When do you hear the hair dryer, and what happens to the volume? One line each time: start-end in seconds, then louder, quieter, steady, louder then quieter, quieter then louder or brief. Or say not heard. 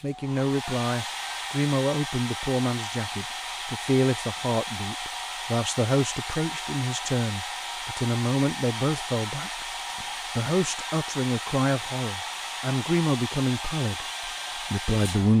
0.0-15.3 steady.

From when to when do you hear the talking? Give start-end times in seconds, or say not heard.
0.0-15.3.